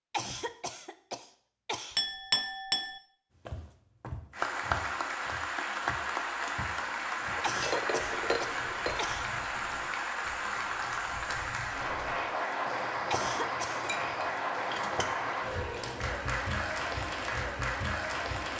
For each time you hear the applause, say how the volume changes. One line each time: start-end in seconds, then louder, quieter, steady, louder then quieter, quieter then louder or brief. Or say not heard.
4.3-18.5 steady.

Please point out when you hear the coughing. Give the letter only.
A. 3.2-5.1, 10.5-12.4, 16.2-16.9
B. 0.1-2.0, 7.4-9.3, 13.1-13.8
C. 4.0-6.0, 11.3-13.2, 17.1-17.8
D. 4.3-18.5
B.